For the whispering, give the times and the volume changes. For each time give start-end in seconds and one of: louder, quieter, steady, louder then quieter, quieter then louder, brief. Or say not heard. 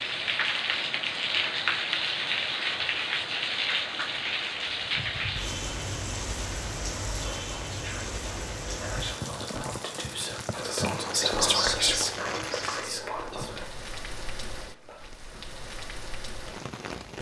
7.2-13.7 louder then quieter.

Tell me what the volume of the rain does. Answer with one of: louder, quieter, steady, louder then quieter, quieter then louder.
quieter.